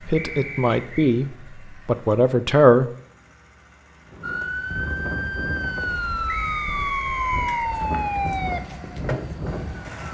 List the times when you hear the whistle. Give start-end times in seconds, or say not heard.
0.1-1.1, 6.2-7.7.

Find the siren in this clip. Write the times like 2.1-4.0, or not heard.
4.2-10.0.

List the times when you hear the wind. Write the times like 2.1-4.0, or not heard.
4.0-10.0.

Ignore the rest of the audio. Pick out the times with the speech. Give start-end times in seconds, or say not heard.
0.1-2.9.